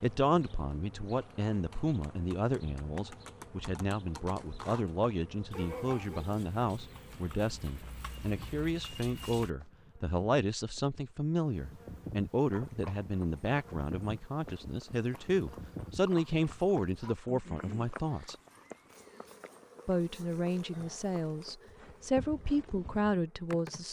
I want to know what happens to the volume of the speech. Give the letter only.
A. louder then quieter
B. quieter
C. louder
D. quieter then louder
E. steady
E.